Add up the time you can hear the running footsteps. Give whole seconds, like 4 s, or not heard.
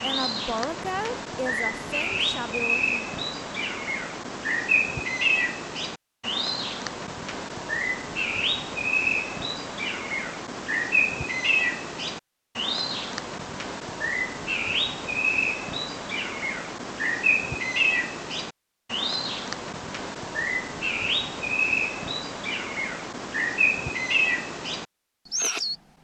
not heard.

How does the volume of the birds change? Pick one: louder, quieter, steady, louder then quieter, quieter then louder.
steady.